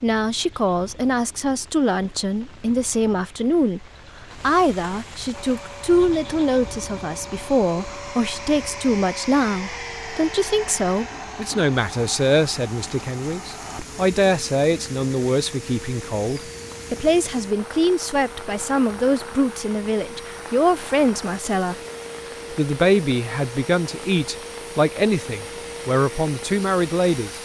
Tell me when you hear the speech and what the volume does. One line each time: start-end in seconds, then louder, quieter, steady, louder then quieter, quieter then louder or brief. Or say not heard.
0.0-21.8 steady
22.5-27.4 steady.